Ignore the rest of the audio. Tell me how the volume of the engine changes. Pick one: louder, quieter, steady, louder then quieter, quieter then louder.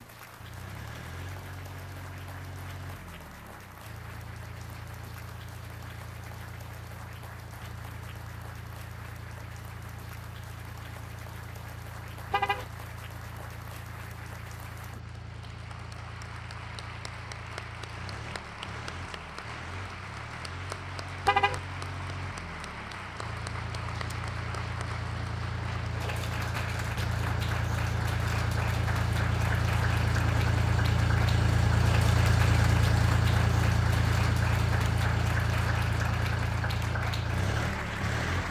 louder.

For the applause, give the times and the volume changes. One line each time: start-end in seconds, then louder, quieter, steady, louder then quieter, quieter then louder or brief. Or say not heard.
0.0-38.4 louder.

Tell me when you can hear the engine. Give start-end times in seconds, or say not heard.
0.0-38.4.